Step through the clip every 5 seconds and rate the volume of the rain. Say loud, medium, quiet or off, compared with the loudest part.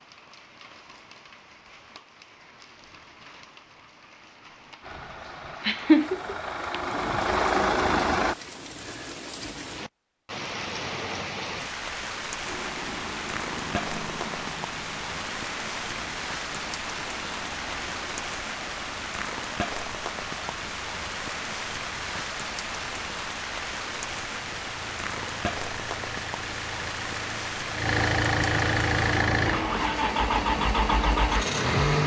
quiet, medium, loud, loud, loud, loud, loud.